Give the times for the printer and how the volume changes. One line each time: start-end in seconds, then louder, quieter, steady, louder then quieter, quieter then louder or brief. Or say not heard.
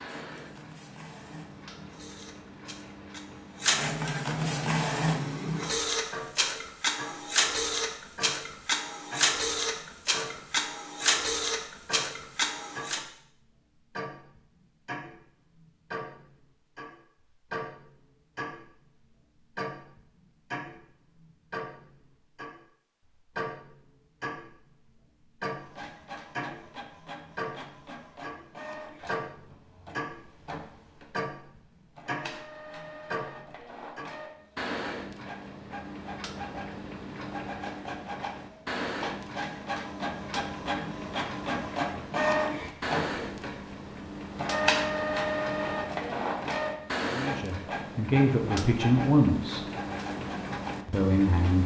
0.0-13.0 louder
25.5-51.6 louder then quieter.